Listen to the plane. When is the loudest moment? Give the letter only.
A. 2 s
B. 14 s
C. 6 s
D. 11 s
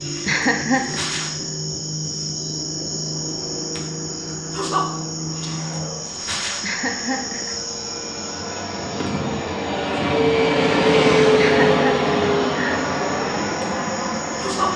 D.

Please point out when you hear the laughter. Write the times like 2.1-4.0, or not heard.
0.2-1.0, 6.6-7.5, 11.3-12.8.